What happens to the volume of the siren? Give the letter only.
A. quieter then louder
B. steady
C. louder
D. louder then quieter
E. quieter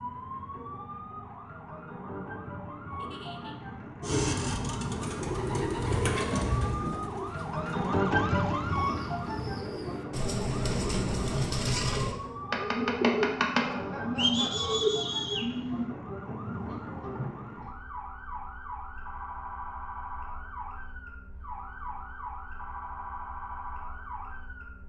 D.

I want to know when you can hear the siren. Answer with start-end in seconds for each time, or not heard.
0.0-24.8.